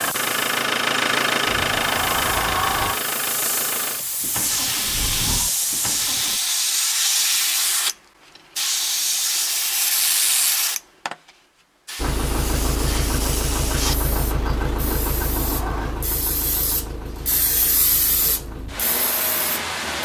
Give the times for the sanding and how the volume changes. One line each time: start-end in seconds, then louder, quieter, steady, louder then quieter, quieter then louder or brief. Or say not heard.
not heard.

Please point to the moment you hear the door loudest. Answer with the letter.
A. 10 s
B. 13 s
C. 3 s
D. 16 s
C.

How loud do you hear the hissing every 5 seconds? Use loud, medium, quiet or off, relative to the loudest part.
medium, loud, medium, medium.